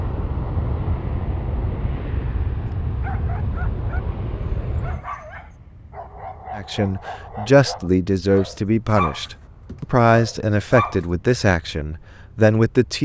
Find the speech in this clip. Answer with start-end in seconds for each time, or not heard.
6.5-13.0.